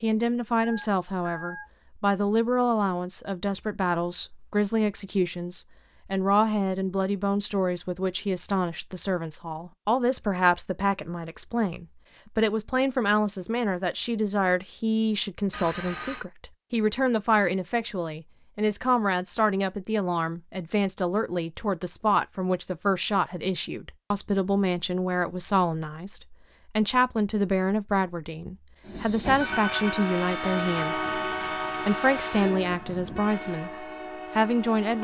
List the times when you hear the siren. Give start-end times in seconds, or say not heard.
not heard.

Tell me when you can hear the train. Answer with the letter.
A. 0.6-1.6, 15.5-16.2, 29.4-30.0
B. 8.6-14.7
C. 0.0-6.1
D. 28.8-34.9
D.